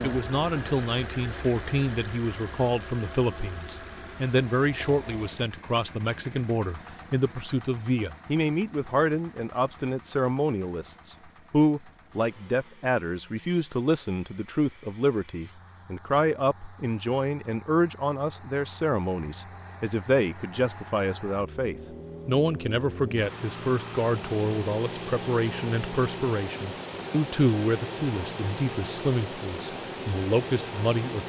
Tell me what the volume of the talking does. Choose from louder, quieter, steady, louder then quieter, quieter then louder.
steady.